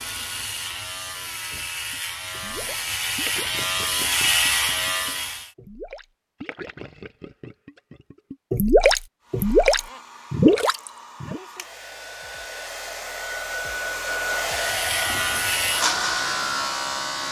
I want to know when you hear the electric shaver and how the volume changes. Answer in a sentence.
You can hear the electric shaver from 0.0 to 5.5 s, getting louder; and briefly from 14.4 to 17.2 s.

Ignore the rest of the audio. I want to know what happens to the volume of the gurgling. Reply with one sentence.
The loudness of the gurgling goes down, then up.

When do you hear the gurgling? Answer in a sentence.
You can hear the gurgling from 1.9 to 11.4 s.